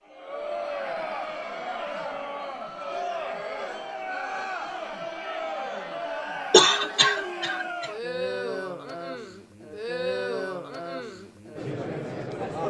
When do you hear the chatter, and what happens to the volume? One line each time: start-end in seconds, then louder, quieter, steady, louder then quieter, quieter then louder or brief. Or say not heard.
0.1-12.6 steady.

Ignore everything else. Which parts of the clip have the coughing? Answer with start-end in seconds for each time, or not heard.
6.5-7.9.